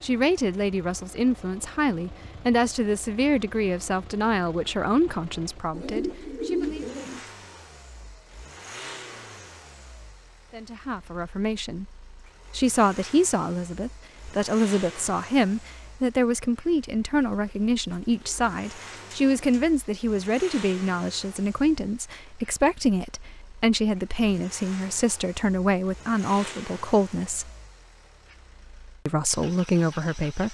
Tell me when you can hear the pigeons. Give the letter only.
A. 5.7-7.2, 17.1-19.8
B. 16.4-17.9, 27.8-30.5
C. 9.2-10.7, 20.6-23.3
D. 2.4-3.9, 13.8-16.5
A.